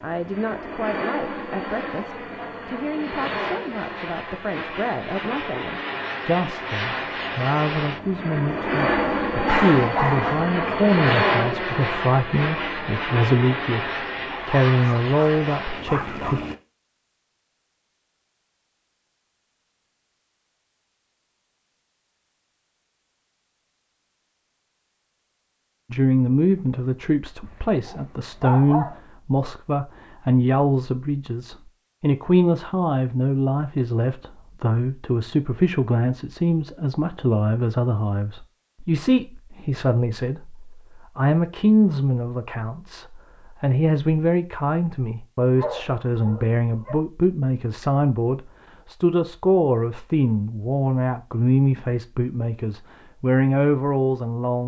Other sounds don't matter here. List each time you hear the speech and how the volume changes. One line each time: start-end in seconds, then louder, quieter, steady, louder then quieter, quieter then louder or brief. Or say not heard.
0.0-16.4 louder
25.9-54.6 steady.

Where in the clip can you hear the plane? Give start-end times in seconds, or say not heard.
0.0-16.6.